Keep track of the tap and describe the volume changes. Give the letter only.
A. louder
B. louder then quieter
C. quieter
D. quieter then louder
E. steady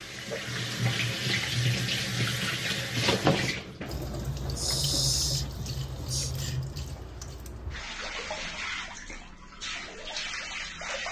C.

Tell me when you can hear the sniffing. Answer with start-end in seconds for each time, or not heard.
4.1-6.3.